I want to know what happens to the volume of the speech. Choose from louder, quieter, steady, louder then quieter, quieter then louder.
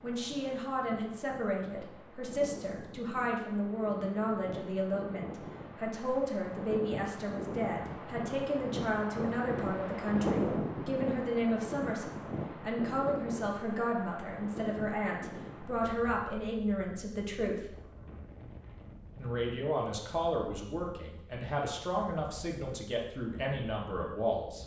steady.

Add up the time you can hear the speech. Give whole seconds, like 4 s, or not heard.
23 s.